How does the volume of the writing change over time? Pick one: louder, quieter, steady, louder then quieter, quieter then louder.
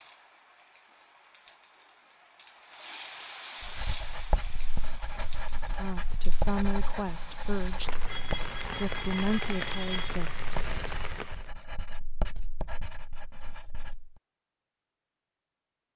quieter.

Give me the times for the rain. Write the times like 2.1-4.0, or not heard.
0.0-11.5.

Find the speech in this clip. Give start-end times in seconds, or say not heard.
5.8-10.7.